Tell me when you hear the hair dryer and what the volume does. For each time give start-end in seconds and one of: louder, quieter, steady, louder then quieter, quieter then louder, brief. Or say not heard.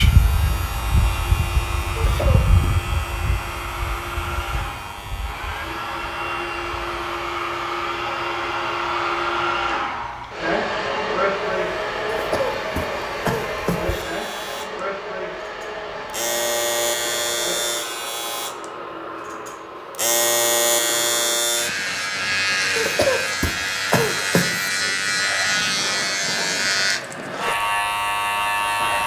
0.1-29.0 louder then quieter.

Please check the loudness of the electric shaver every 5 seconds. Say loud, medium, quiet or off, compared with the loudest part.
medium, quiet, quiet, loud, loud, loud.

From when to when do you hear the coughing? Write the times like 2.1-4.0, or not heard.
1.9-2.8, 12.1-14.0, 22.8-24.7.